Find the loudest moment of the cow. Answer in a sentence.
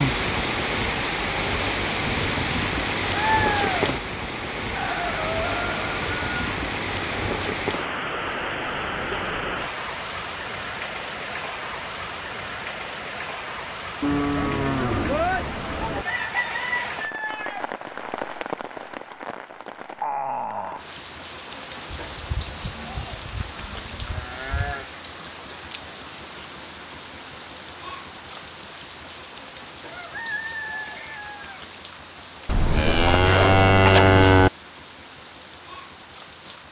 The volume of the cow peaks at 34 seconds.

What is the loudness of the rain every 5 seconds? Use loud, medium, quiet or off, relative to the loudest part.
loud, loud, medium, medium, medium, quiet, quiet, quiet.